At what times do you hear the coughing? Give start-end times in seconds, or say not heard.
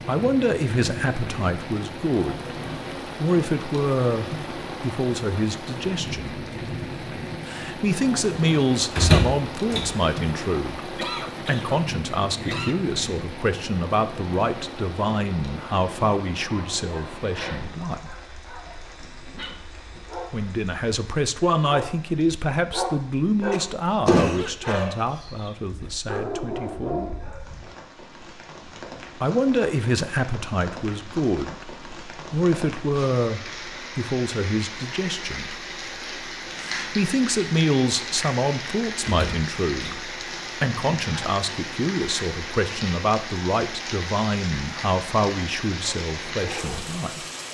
10.9-12.8, 23.5-24.9, 40.8-41.3.